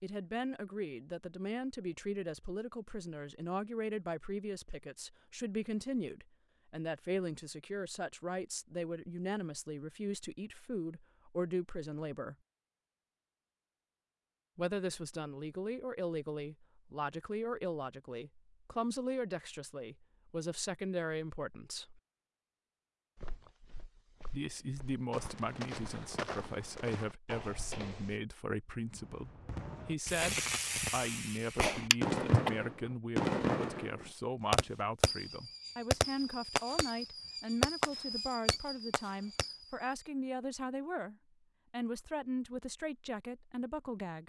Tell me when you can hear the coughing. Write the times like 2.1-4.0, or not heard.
31.9-32.5.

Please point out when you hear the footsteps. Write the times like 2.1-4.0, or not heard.
23.1-28.2.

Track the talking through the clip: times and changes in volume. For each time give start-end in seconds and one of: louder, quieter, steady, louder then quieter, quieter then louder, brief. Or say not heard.
0.0-12.3 steady
14.6-22.0 steady
24.3-44.2 steady.